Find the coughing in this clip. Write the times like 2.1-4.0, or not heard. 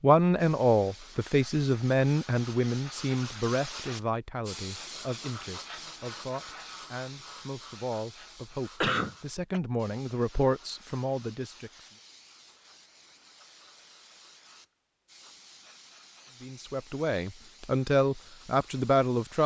8.8-9.6.